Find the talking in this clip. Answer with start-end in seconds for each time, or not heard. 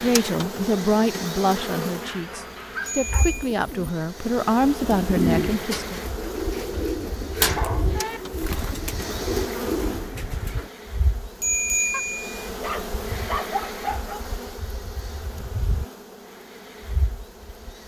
0.0-6.0.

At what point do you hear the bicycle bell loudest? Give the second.
12 s.